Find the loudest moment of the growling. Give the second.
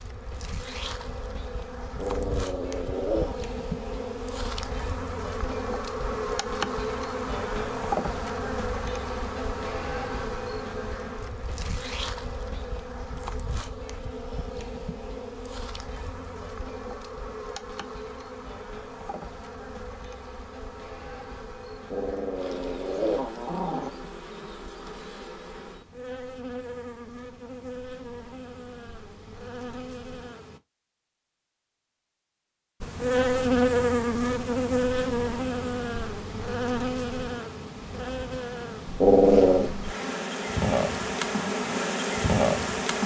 39 s.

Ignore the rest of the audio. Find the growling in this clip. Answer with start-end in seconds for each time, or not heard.
1.9-3.4, 21.9-23.9, 39.0-39.7.